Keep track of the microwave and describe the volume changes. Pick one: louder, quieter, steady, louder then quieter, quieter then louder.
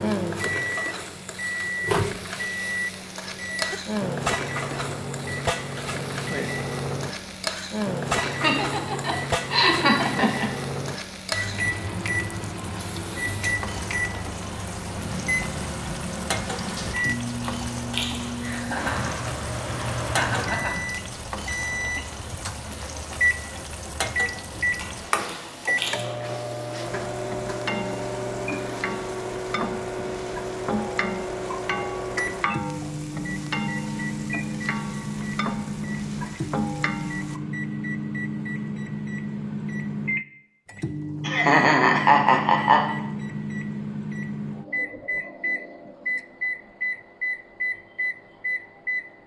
steady.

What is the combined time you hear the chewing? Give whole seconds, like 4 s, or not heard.
3 s.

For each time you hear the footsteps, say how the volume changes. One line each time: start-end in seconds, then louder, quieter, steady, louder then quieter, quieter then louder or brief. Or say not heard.
not heard.